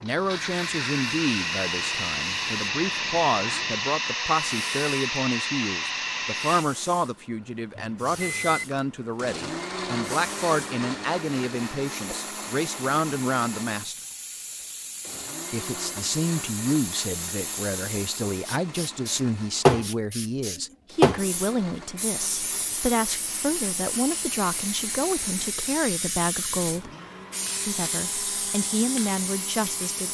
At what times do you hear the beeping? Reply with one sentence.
The beeping can be heard from 7.8 to 8.7 s.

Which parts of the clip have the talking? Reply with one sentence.
You can hear the talking from 0.0 to 13.9 s, from 15.5 to 26.9 s and from 27.6 to 30.0 s.